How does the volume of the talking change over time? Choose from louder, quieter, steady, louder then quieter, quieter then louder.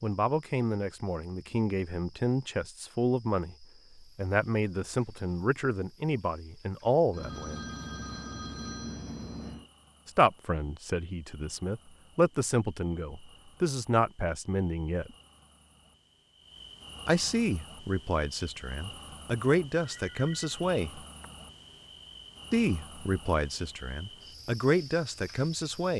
steady.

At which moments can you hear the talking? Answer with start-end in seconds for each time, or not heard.
0.0-7.7, 10.1-15.1, 17.1-21.0, 22.5-25.9.